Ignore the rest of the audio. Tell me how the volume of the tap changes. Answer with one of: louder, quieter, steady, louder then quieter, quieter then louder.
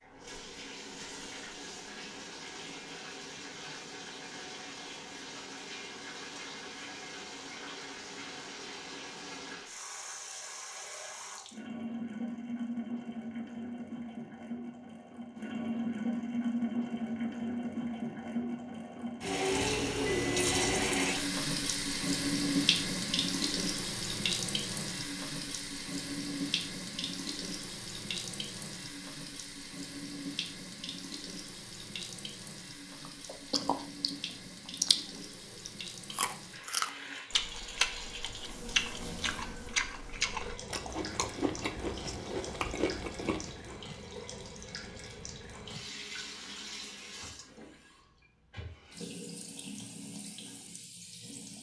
louder then quieter.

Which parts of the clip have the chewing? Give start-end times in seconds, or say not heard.
33.0-43.8.